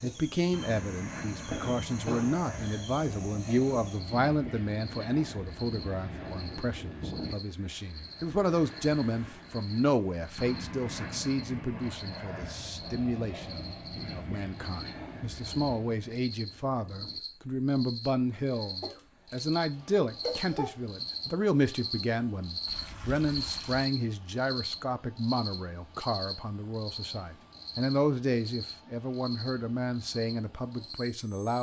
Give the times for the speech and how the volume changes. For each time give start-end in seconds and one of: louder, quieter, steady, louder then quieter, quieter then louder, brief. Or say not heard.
0.0-31.5 steady.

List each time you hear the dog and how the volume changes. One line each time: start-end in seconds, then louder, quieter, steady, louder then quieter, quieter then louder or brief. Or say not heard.
not heard.